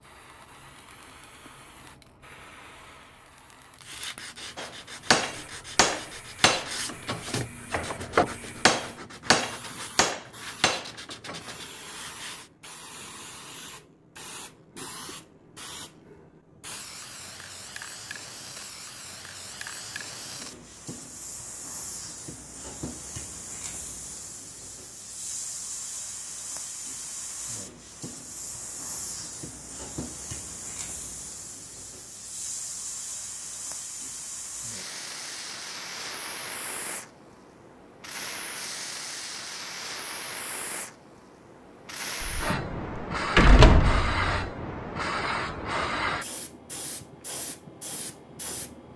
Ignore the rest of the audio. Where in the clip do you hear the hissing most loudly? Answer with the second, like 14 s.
44 s.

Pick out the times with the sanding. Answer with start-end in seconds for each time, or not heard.
3.8-12.5.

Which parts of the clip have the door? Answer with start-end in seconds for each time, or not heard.
42.2-44.5.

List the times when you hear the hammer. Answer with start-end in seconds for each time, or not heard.
4.5-11.6.